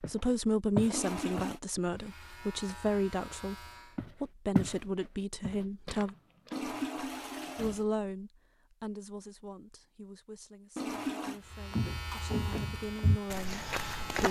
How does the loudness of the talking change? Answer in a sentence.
The volume of the talking goes down, then up.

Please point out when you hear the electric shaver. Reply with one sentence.
The electric shaver can be heard from 1.9 to 4.0 s and from 11.4 to 14.2 s.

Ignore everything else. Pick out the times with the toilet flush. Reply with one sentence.
The toilet flush can be heard from 0.9 to 1.6 s, from 6.5 to 7.8 s and from 10.8 to 11.4 s.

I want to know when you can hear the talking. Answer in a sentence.
The talking can be heard from 0.0 to 6.2 s and from 7.5 to 14.2 s.